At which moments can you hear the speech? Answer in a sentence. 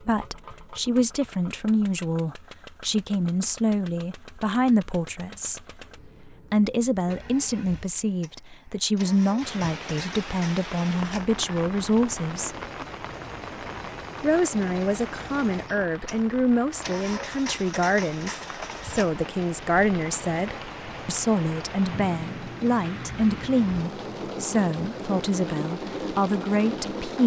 The speech can be heard from 0.1 to 5.6 s, from 6.2 to 12.6 s and from 14.2 to 27.2 s.